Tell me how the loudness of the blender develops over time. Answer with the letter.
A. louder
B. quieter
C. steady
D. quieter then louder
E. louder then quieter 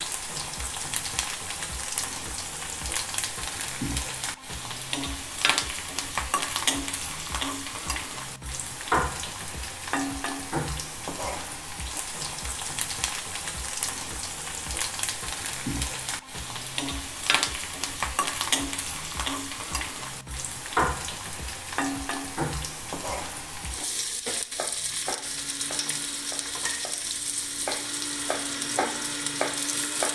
D.